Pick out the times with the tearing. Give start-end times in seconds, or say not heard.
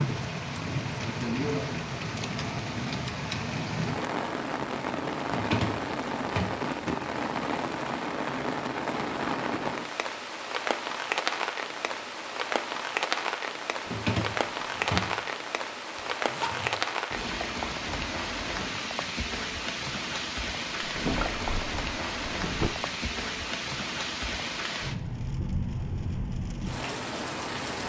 not heard.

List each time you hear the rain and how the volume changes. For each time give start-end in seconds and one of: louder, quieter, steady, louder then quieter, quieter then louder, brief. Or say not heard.
0.0-27.8 steady.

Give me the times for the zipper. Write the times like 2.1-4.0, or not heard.
15.9-16.8.